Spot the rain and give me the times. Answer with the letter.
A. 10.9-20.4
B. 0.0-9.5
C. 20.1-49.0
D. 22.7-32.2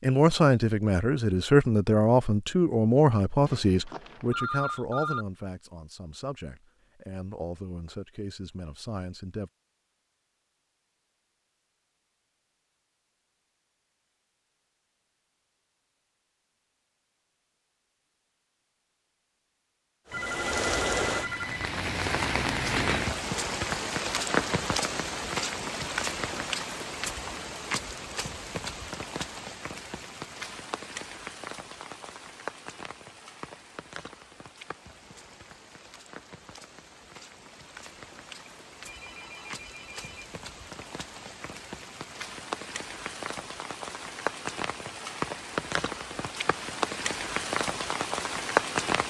C.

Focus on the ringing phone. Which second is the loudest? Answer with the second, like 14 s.
5 s.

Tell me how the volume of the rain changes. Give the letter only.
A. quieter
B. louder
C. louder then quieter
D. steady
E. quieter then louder
E.